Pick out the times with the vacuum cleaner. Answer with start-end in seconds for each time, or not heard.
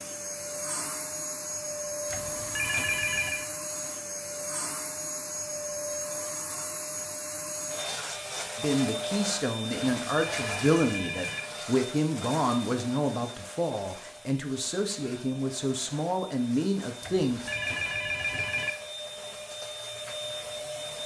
0.0-21.0.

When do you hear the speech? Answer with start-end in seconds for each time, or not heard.
8.6-17.4.